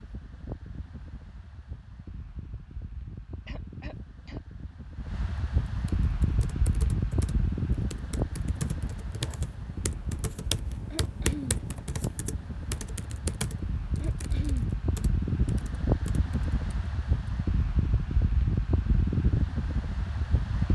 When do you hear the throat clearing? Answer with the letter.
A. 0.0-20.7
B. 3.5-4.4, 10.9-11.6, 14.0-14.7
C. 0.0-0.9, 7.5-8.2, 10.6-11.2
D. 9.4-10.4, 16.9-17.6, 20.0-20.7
B.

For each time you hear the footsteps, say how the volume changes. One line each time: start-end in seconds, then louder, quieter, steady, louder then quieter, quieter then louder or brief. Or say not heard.
not heard.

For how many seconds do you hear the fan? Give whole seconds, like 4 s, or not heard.
21 s.